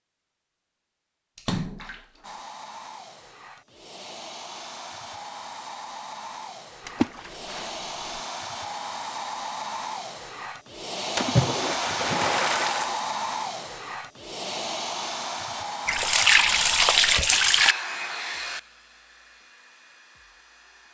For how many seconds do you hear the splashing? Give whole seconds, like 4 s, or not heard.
6 s.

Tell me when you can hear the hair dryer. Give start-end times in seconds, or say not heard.
2.2-20.8.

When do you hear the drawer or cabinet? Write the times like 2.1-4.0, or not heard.
not heard.